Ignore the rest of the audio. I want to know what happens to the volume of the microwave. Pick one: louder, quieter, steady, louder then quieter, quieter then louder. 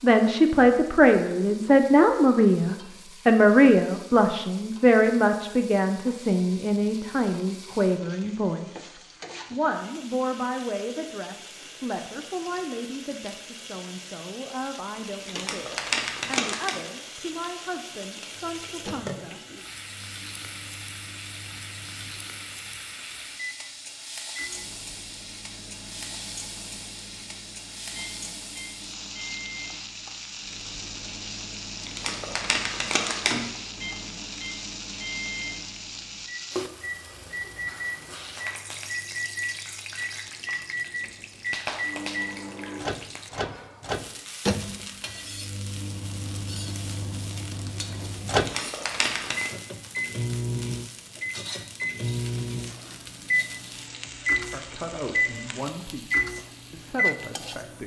louder.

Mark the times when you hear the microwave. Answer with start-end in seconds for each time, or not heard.
18.4-57.8.